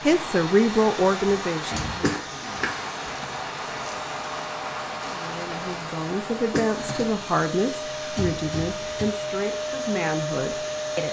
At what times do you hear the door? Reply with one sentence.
The door can be heard from 1.7 to 2.1 s and from 8.2 to 9.1 s.